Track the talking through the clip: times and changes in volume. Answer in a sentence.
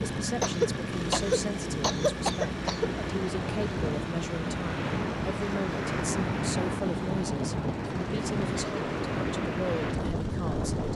You can hear the talking from 0.0 to 10.9 s, at a steady volume.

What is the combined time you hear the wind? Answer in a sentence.
The wind can be heard for 11 seconds in total.